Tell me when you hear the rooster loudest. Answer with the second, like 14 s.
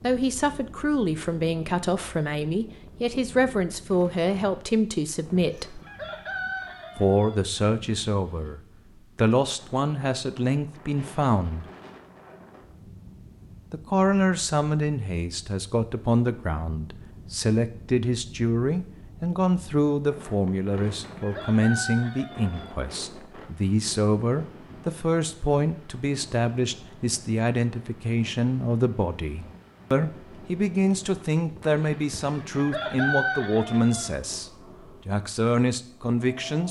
33 s.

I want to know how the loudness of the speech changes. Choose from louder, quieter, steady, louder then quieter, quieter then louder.
steady.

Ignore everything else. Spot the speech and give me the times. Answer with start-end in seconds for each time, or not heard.
0.0-5.8, 7.0-11.7, 13.7-36.6.